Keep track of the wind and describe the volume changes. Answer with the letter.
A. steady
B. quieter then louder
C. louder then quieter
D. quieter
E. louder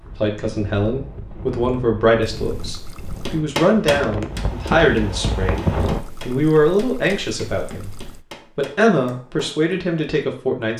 E.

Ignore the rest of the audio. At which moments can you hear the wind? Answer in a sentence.
The wind can be heard from 0.0 to 6.0 s.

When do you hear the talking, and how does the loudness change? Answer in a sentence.
You can hear the talking from 0.1 to 10.7 s, at a steady volume.